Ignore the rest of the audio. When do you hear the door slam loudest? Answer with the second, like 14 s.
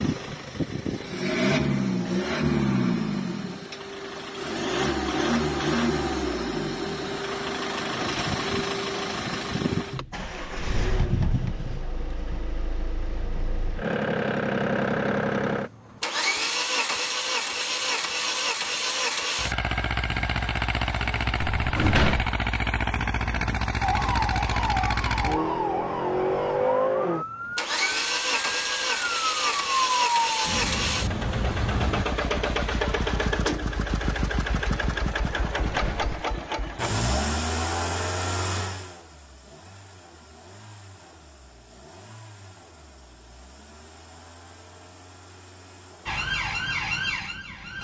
22 s.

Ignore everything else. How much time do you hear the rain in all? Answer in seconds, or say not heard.
not heard.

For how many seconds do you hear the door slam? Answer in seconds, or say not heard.
2 s.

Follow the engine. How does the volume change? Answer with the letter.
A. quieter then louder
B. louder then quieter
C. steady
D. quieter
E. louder
D.